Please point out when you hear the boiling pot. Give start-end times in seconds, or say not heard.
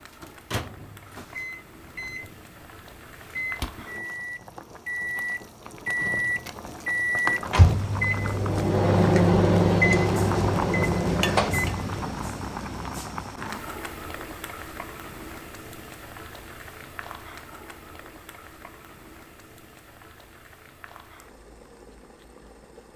0.0-22.9.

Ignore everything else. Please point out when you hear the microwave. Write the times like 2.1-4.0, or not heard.
0.0-13.0.